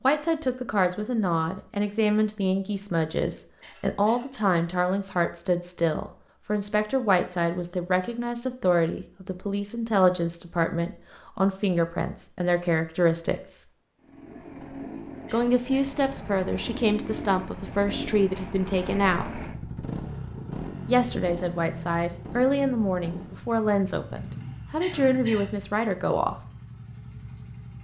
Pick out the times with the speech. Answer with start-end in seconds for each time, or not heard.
0.0-13.7, 15.3-19.4, 20.9-26.4.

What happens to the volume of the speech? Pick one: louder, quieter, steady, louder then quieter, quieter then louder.
steady.